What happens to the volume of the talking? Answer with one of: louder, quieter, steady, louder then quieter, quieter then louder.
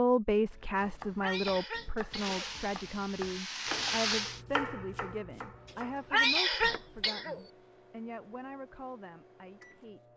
quieter.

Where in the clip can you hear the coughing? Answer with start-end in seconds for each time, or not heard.
1.2-2.4, 6.1-7.4.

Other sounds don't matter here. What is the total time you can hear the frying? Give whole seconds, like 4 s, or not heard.
2 s.